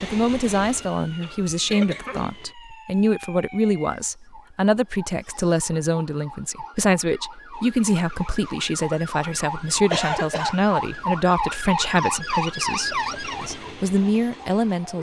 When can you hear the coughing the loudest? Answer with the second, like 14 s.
10 s.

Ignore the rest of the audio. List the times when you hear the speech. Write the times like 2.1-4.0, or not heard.
0.0-14.9.